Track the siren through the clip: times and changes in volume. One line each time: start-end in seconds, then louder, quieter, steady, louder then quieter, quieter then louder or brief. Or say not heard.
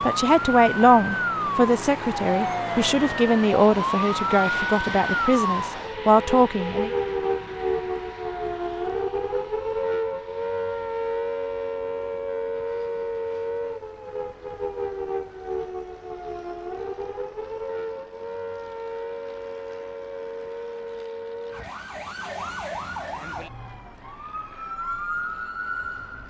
0.0-26.2 quieter.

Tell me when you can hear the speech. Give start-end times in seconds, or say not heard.
0.0-6.9.